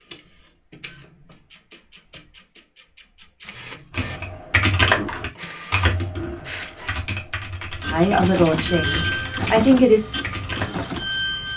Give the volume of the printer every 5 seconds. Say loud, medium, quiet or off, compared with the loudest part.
quiet, loud, loud.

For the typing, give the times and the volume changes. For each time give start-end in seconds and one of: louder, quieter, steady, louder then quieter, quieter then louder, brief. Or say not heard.
3.9-10.9 quieter.